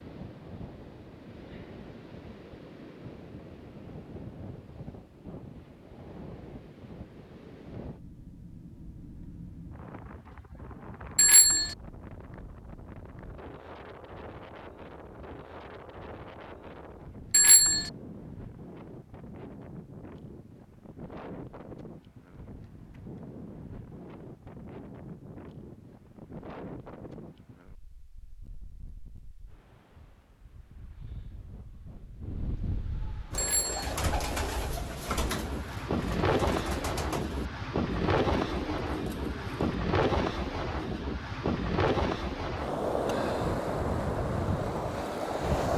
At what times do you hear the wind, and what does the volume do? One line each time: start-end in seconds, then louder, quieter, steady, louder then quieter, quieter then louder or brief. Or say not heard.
0.0-45.7 louder.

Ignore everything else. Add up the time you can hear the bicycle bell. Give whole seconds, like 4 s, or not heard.
2 s.